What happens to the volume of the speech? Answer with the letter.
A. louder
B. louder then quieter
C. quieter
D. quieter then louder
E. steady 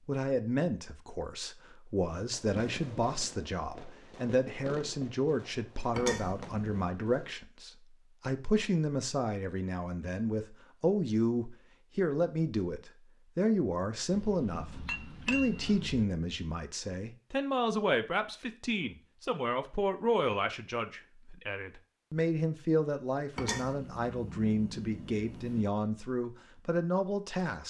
E.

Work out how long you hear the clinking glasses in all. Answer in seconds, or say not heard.
5 s.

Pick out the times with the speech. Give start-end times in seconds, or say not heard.
0.1-27.6.